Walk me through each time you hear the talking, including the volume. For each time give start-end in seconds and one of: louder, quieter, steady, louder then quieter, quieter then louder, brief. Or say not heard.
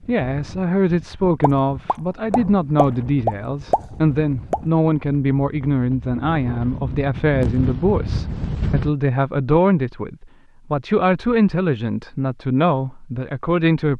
0.1-13.9 steady.